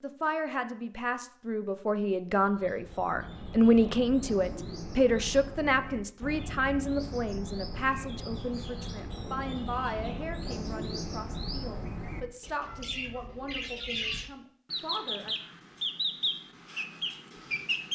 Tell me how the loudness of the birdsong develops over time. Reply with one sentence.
The loudness of the birdsong goes up.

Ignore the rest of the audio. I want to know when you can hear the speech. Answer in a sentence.
The speech can be heard from 0.0 to 15.3 s.